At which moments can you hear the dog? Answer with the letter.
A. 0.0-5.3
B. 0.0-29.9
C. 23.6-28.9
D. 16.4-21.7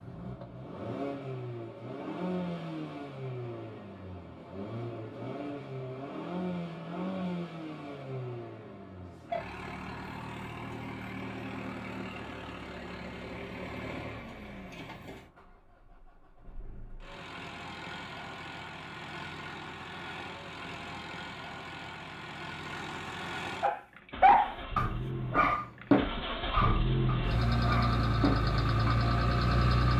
C.